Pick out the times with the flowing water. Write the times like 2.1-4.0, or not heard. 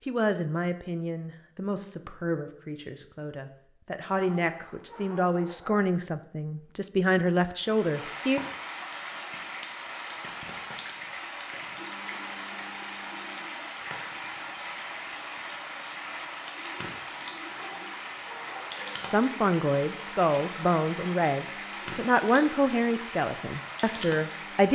7.5-24.7.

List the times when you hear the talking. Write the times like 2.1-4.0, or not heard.
0.1-8.4, 19.0-24.7.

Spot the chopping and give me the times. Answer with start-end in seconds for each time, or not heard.
not heard.